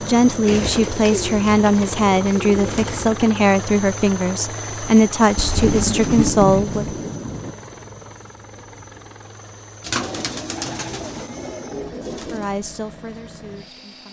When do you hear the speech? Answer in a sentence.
You can hear the speech from 0.0 to 6.8 s and from 12.1 to 14.0 s.